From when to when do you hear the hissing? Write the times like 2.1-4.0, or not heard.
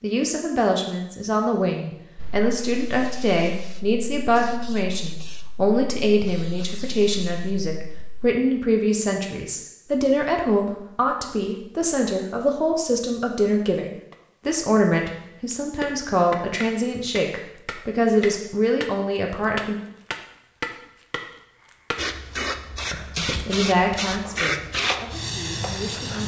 2.1-8.3, 21.9-26.2.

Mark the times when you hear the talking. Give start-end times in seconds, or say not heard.
0.0-19.8, 22.9-26.2.